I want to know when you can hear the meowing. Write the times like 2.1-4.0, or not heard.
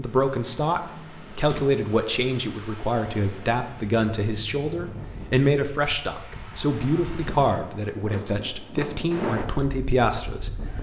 not heard.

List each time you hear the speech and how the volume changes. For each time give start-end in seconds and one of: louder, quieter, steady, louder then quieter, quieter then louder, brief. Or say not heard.
0.0-10.7 steady.